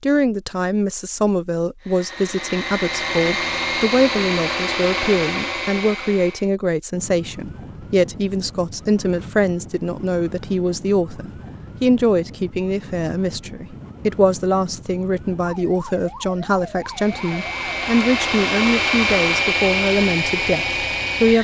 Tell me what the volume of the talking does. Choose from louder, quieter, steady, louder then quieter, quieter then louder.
steady.